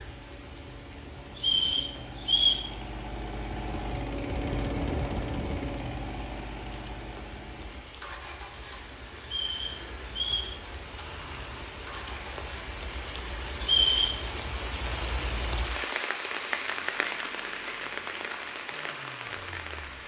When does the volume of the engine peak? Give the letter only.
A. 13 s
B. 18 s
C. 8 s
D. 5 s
D.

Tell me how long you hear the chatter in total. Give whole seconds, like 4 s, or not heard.
not heard.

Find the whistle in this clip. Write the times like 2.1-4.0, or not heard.
1.4-2.6, 9.2-10.6, 13.6-14.2.